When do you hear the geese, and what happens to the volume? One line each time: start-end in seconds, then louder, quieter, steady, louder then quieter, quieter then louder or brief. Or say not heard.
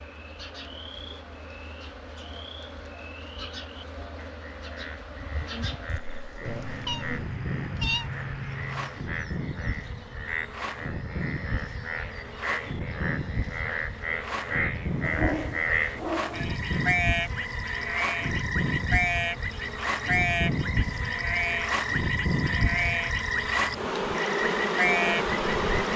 not heard.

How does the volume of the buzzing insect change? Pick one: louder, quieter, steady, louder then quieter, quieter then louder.
louder.